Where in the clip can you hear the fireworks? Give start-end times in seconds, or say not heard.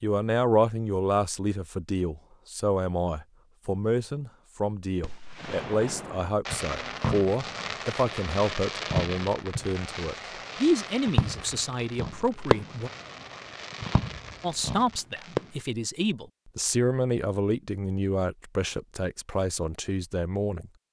5.0-15.5.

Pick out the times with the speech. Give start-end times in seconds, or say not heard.
0.0-12.9, 14.4-20.7.